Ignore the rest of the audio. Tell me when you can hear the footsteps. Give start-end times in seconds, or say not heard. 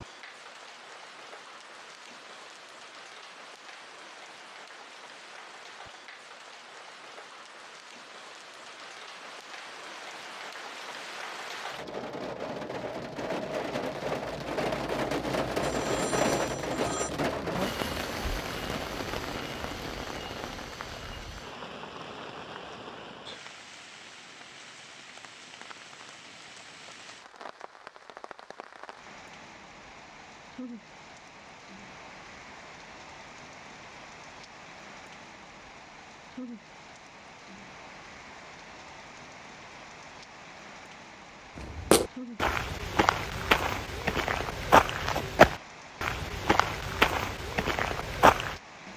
41.5-48.5.